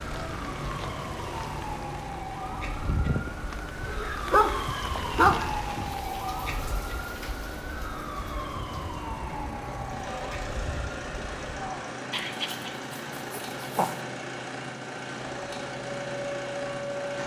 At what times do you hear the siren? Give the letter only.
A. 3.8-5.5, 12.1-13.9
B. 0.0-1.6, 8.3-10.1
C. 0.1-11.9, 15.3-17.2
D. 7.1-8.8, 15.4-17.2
C.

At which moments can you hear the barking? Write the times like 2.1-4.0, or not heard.
3.8-5.5, 12.1-13.9.